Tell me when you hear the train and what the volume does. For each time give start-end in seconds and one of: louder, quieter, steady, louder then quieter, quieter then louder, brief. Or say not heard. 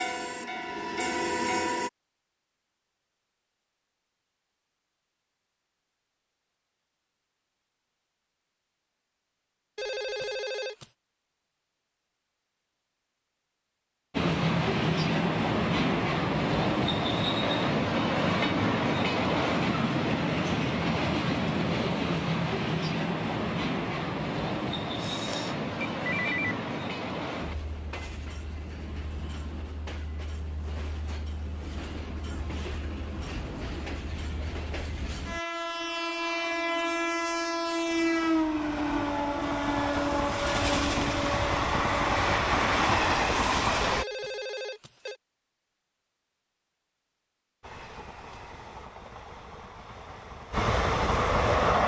0.0-1.9 brief
14.1-44.0 quieter then louder
47.6-51.8 louder.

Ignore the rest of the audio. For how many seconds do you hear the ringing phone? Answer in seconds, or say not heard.
4 s.